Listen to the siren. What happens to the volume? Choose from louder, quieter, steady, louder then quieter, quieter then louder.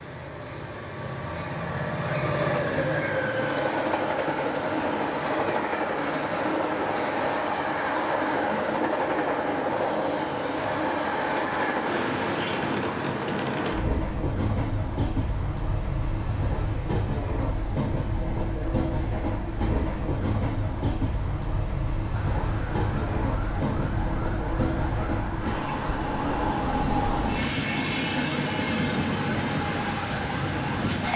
steady.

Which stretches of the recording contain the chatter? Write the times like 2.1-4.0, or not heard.
not heard.